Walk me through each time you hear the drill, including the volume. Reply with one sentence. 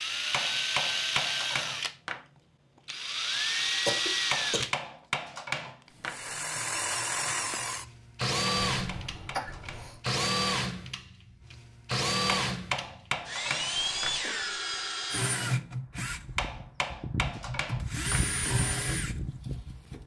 The drill can be heard briefly from 0.0 to 1.9 s; briefly from 2.9 to 4.8 s; and from 5.7 to 20.0 s, at a steady volume.